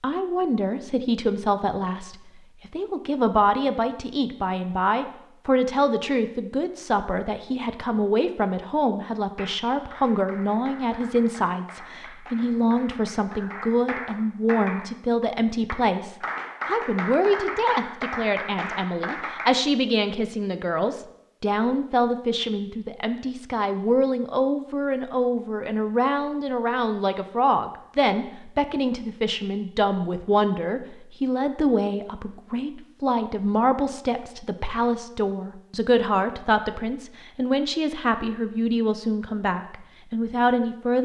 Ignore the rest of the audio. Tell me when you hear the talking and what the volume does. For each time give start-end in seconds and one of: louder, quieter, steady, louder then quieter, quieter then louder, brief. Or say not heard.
0.0-40.9 steady.